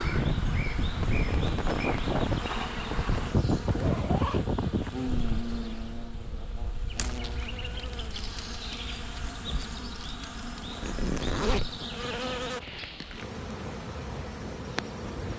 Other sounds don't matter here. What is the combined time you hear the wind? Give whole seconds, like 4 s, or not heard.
15 s.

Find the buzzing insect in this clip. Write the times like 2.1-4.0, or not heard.
0.0-15.3.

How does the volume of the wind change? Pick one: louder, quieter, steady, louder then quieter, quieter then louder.
quieter.